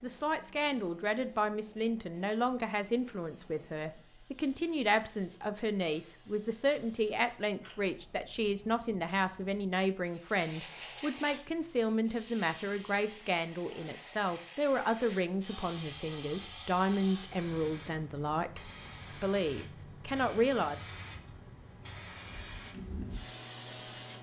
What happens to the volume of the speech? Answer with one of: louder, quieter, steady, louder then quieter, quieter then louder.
steady.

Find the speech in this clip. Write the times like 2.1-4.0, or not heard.
0.0-20.9.